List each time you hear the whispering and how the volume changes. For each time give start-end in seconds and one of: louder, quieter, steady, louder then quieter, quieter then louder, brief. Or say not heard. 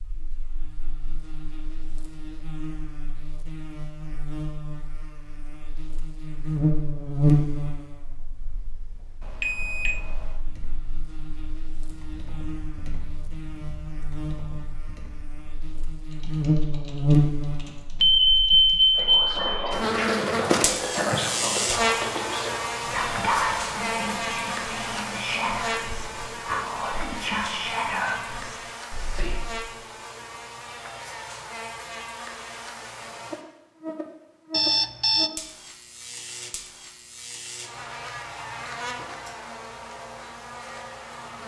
18.9-29.6 steady.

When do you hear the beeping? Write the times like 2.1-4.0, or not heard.
9.2-10.4, 18.0-19.7, 34.5-35.3.